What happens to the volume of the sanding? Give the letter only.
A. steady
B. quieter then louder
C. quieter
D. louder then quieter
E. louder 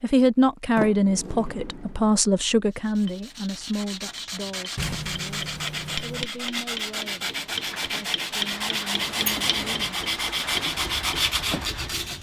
E.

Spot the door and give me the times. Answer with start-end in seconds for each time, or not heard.
0.8-2.1, 4.8-6.2, 8.9-9.9.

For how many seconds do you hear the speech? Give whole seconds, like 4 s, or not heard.
10 s.